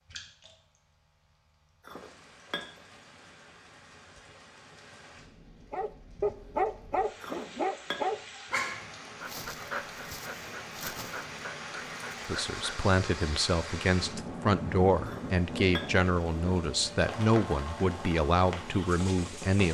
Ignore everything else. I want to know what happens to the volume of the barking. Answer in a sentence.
The loudness of the barking goes down.